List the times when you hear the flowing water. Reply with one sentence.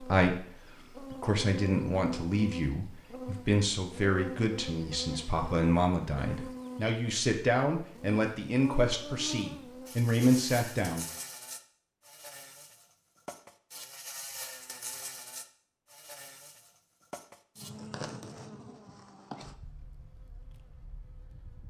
The flowing water can't be heard in this clip.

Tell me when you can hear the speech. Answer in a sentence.
The speech can be heard from 0.0 to 11.1 s.